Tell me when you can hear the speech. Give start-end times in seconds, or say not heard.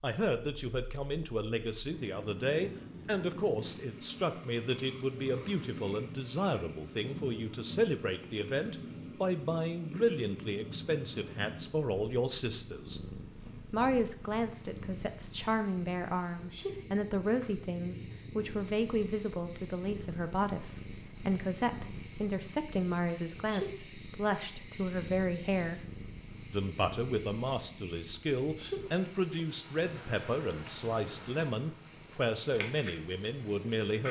0.0-13.0, 13.7-25.8, 26.5-34.0.